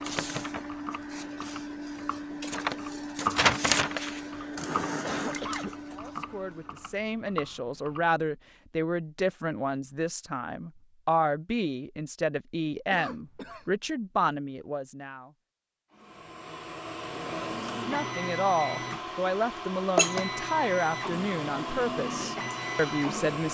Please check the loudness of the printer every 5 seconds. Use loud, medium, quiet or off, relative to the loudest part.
loud, medium, off, loud, loud.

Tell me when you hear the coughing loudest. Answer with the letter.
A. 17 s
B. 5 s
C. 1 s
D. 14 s
B.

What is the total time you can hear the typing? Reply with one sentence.
The typing can be heard for 8 seconds in total.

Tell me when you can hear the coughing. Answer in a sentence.
The coughing can be heard from 4.2 to 6.2 s and from 12.9 to 13.7 s.